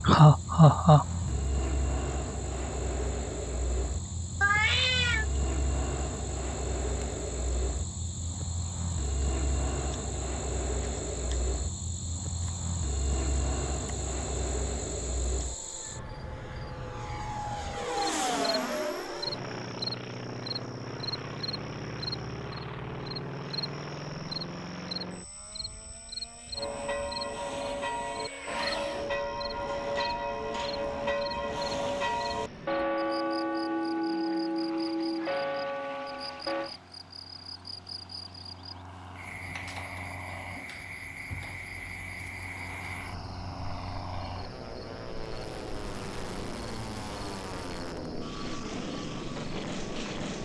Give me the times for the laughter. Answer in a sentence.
You can hear the laughter from 0.0 to 1.4 s.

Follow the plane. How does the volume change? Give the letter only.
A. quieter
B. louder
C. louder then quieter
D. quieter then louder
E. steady
D.